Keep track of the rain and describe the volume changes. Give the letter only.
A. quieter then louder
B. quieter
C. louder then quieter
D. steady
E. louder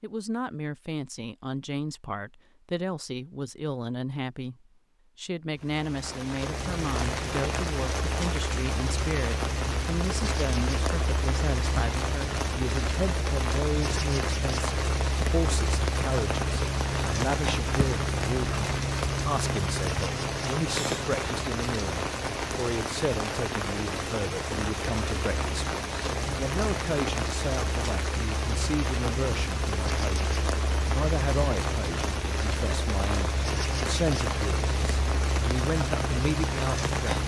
D.